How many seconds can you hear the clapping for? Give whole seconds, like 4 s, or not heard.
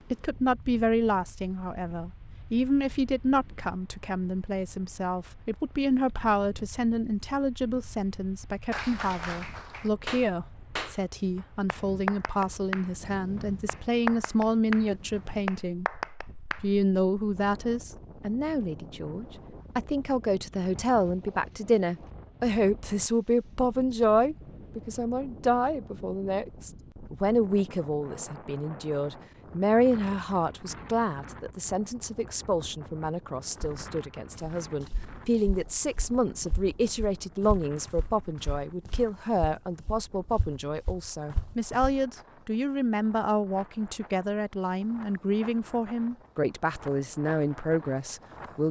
8 s.